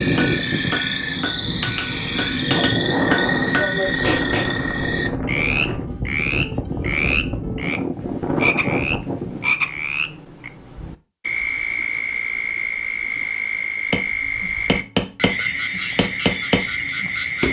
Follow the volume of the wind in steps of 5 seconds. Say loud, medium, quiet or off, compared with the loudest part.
loud, loud, off, off.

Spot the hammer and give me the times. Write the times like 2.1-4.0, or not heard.
0.0-4.5, 13.9-17.4.